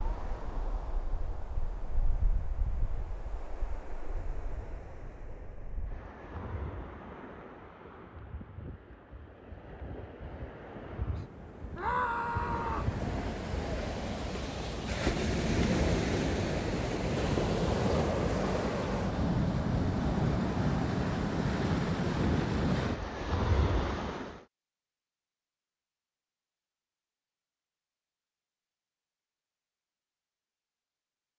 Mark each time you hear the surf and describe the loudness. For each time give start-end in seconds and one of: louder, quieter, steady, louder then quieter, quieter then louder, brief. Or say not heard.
0.0-24.4 louder.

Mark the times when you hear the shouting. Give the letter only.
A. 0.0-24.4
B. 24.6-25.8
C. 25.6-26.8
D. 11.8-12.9
D.